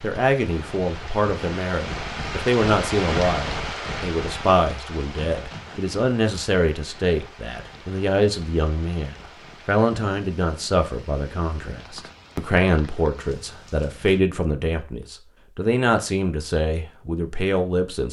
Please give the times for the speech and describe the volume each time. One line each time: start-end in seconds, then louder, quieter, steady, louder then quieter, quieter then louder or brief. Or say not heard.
0.0-18.0 steady.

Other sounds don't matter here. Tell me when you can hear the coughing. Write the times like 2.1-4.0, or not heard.
not heard.